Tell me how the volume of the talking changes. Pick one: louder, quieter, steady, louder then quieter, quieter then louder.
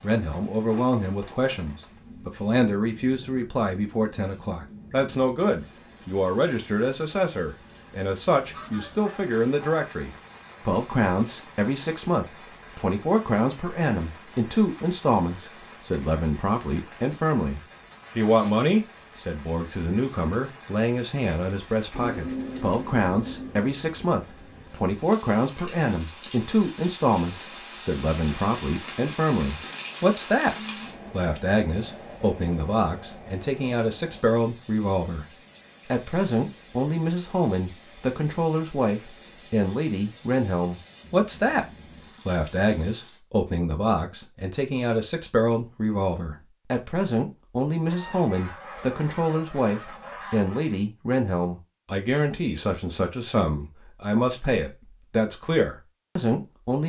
steady.